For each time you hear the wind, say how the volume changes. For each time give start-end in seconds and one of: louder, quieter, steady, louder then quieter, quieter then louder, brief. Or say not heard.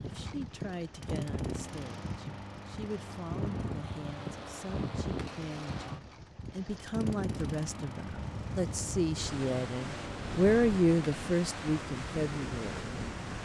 0.0-13.4 steady.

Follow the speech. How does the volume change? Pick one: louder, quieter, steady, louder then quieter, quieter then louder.
louder.